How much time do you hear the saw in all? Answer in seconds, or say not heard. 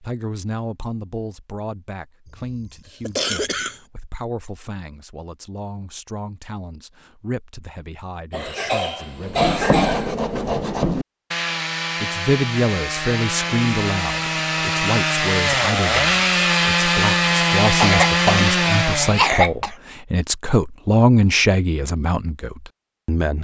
10 s.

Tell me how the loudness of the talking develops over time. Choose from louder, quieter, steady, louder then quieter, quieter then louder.
louder.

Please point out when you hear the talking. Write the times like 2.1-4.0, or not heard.
0.0-9.8, 12.0-23.3.